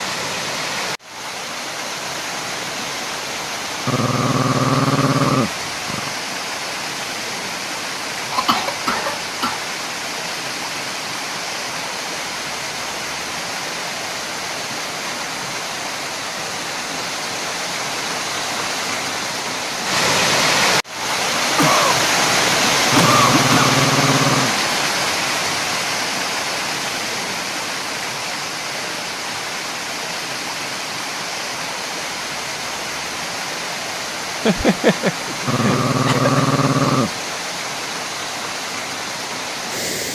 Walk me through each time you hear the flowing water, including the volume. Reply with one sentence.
The flowing water can be heard from 0.0 to 40.0 s, getting louder then quieter.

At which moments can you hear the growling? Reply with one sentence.
The growling can be heard from 3.9 to 6.2 s, from 22.9 to 24.6 s and from 35.5 to 37.1 s.